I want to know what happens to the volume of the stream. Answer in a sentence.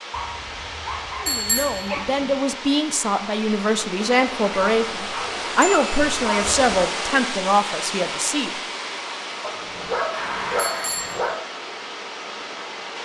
The volume of the stream goes up, then down.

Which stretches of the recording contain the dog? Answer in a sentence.
You can hear the dog from 0.1 to 2.0 s, from 4.5 to 6.8 s and from 9.4 to 11.3 s.